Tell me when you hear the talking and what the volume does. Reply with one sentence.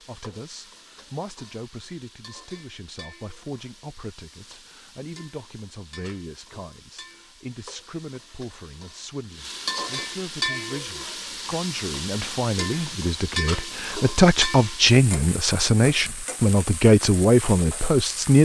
The talking can be heard from 0.0 to 18.4 s, getting louder.